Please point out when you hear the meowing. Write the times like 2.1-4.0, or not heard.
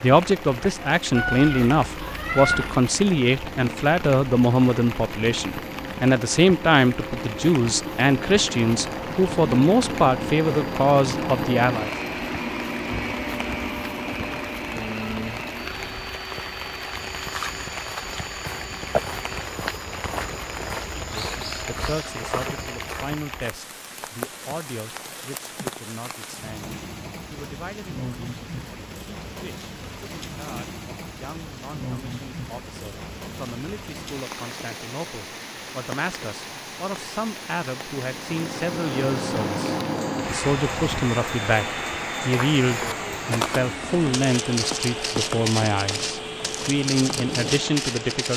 1.1-2.8.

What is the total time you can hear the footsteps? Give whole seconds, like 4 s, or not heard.
13 s.